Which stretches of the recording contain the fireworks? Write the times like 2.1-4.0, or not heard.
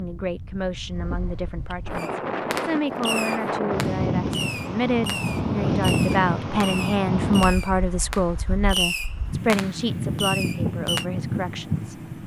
1.9-11.1.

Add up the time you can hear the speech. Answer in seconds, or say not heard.
12 s.